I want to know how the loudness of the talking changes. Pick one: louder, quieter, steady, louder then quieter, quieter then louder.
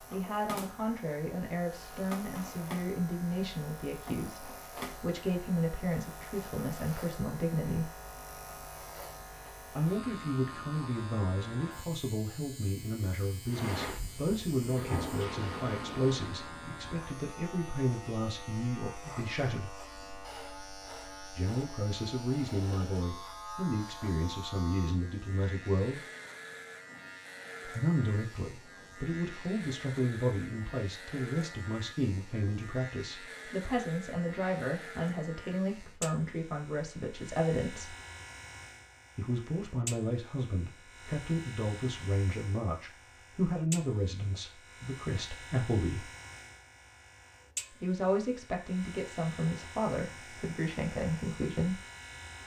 steady.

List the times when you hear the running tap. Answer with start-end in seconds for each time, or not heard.
13.5-16.6.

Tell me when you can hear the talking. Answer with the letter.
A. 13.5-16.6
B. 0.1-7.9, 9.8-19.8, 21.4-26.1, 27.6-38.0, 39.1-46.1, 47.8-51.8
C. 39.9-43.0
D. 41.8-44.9
B.